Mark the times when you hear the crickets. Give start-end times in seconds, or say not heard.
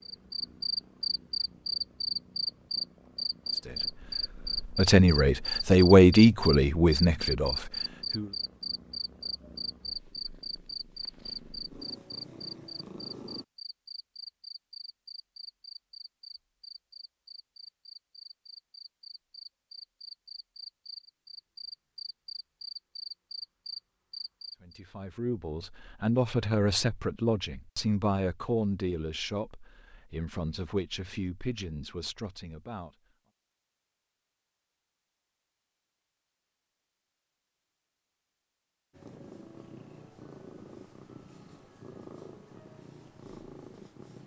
0.0-24.6.